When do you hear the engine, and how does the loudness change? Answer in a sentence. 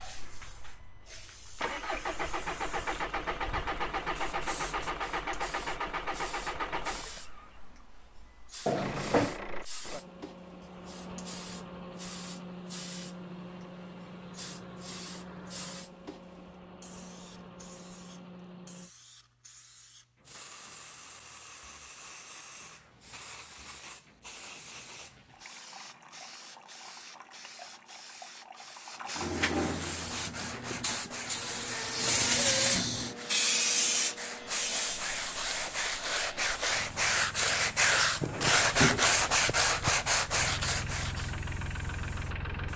The engine can be heard from 0.0 to 18.9 s, getting quieter; and from 34.3 to 42.7 s, getting louder.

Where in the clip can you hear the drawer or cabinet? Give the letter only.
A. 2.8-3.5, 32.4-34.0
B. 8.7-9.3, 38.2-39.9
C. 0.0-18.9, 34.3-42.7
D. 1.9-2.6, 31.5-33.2
B.